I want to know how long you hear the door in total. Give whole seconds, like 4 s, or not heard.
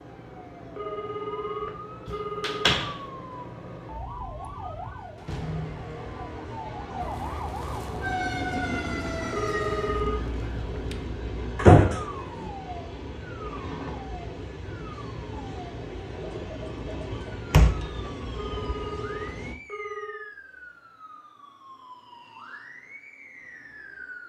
3 s.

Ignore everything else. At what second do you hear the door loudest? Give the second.
12 s.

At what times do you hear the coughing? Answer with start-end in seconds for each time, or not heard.
not heard.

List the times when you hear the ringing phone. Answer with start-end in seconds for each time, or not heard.
0.8-2.8, 9.3-10.2, 18.4-20.3.